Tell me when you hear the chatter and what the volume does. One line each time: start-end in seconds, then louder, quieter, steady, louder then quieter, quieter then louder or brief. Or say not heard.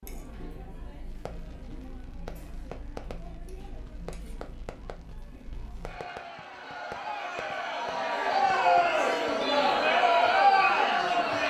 0.0-11.4 louder.